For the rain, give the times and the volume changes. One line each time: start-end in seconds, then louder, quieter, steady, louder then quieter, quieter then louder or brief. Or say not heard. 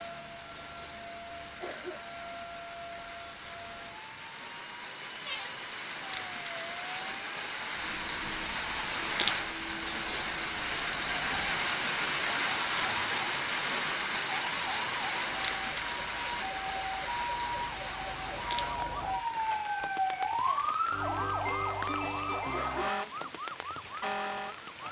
0.0-24.8 louder then quieter.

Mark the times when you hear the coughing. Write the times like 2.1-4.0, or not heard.
1.6-2.5, 22.5-23.4.